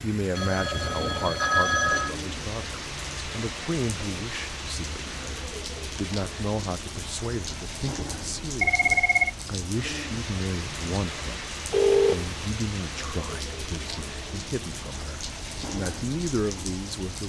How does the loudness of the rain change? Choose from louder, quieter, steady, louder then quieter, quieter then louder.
steady.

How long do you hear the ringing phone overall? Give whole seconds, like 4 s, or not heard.
3 s.